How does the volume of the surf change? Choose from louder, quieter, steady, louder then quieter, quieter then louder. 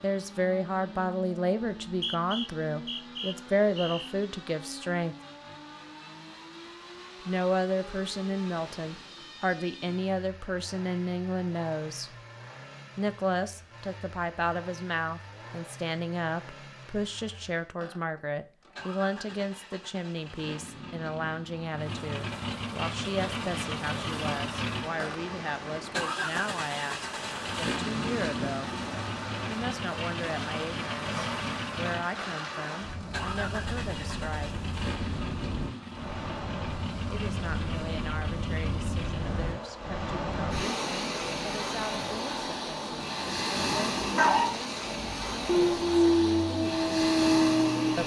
louder.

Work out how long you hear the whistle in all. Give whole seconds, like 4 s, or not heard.
2 s.